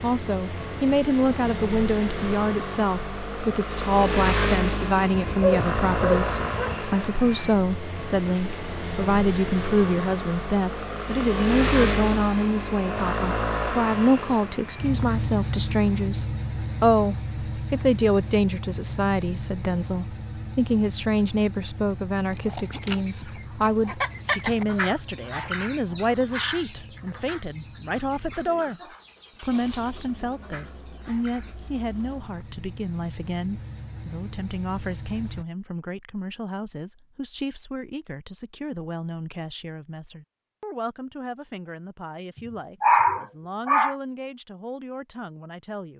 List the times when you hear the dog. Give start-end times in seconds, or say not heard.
5.1-6.8, 42.8-44.0.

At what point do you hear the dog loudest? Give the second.
43 s.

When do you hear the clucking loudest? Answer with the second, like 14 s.
24 s.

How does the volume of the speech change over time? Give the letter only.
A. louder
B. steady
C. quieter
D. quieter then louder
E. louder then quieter
C.